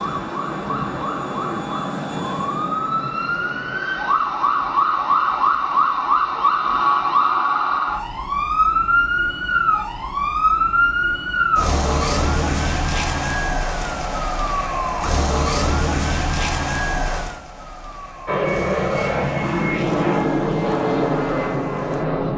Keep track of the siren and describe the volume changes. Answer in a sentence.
The volume of the siren goes up, then down.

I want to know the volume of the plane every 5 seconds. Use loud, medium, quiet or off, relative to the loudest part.
medium, off, off, loud, loud.